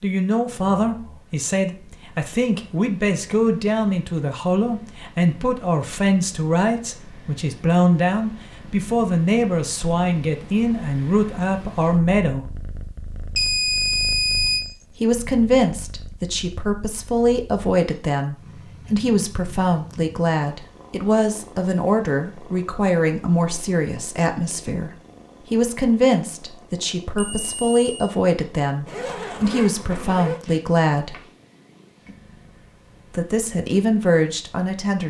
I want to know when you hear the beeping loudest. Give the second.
14 s.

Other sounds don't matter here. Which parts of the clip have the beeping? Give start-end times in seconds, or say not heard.
13.3-14.7, 27.1-28.1.